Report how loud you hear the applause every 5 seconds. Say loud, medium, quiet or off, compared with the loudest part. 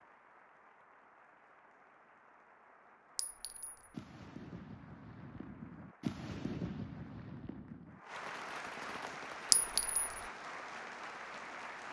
quiet, loud, loud.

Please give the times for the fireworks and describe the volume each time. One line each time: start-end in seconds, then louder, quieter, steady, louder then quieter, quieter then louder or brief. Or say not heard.
3.9-10.0 louder then quieter.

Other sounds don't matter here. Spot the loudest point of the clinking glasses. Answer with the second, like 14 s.
10 s.